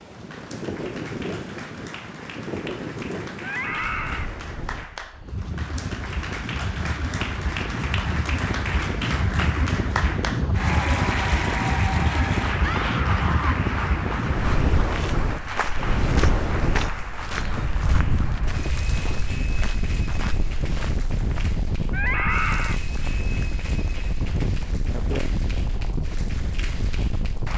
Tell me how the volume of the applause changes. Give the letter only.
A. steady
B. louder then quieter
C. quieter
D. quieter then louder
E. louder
B.